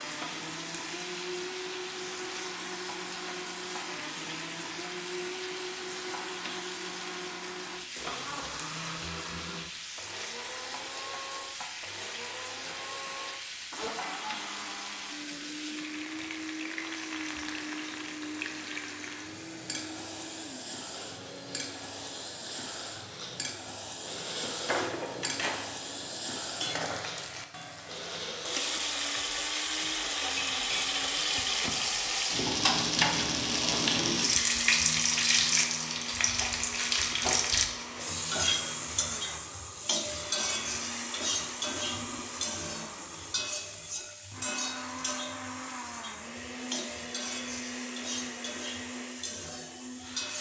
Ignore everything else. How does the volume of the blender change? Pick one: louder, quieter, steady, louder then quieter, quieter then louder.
steady.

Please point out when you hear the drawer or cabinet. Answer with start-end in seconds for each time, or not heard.
24.6-25.7.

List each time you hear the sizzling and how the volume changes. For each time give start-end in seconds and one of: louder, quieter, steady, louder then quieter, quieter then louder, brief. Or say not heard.
0.0-50.3 louder then quieter.